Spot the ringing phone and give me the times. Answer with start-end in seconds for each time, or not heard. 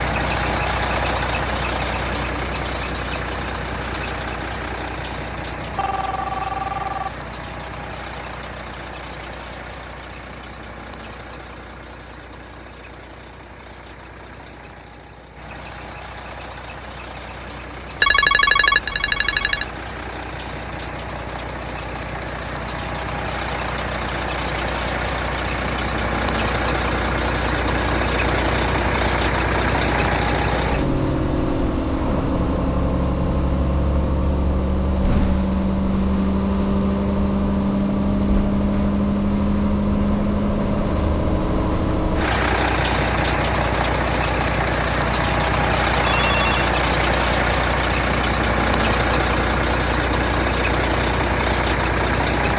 5.6-7.2, 18.0-19.6, 46.0-46.7.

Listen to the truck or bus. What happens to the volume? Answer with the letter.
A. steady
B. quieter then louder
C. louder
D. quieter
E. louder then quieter
B.